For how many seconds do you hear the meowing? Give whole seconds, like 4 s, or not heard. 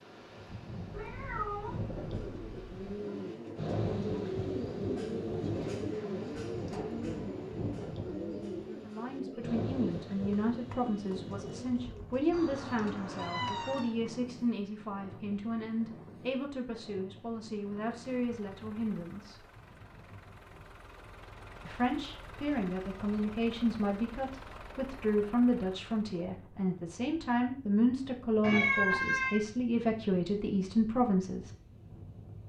5 s.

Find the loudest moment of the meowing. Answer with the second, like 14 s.
29 s.